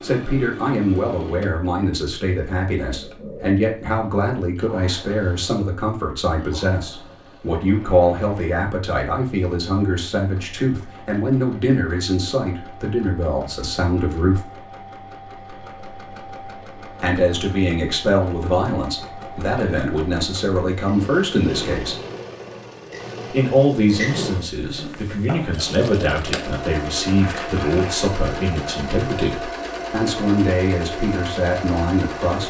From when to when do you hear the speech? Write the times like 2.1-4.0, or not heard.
0.0-14.4, 17.0-21.9, 23.3-32.4.